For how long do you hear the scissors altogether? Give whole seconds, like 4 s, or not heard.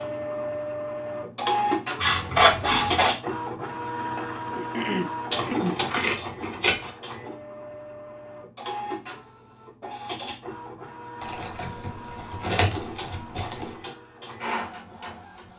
5 s.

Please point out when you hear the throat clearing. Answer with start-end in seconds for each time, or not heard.
4.5-6.1.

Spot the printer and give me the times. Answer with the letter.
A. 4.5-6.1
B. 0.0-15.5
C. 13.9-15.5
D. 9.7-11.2
B.